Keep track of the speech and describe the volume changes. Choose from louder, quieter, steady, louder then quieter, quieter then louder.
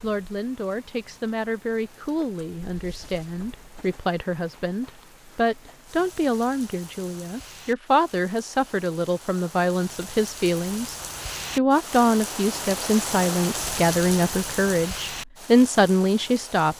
louder.